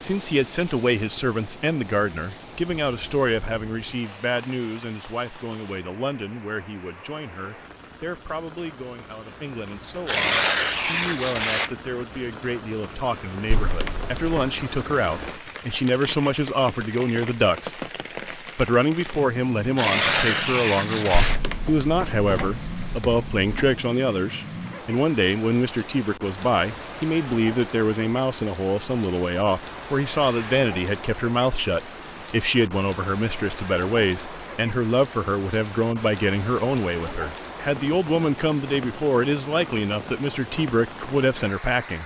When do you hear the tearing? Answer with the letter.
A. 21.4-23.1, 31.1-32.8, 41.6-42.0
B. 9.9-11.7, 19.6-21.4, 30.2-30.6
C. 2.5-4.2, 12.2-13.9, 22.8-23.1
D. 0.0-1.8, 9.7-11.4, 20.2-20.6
B.